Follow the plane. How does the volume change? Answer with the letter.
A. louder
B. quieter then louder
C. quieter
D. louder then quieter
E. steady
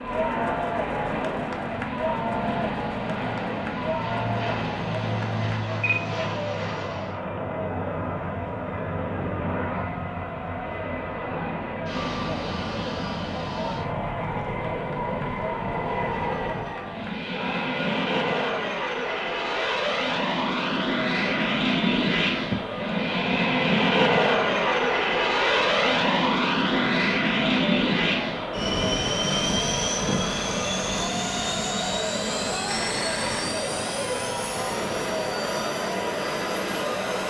D.